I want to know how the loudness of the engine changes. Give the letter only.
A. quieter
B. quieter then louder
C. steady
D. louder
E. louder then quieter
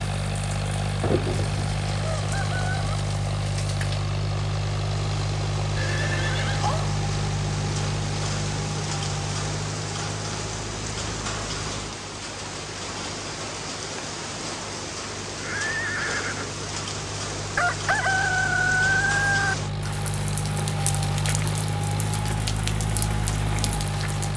B.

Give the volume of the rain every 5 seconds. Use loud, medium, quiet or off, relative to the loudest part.
medium, loud, loud, loud, loud.